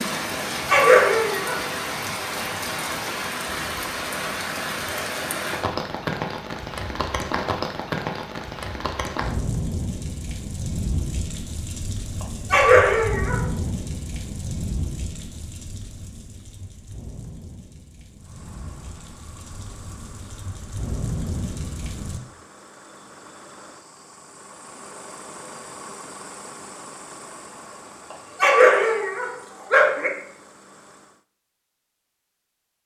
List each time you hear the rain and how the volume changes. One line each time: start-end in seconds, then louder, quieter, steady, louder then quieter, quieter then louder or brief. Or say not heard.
0.0-22.2 quieter.